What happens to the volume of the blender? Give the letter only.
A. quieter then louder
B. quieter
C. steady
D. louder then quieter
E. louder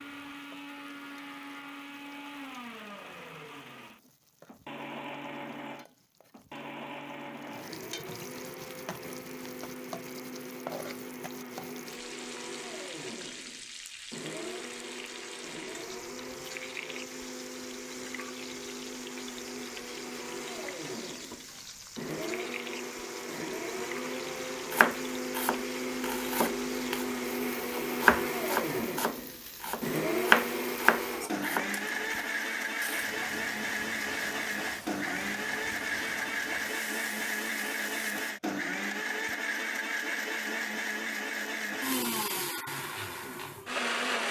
E.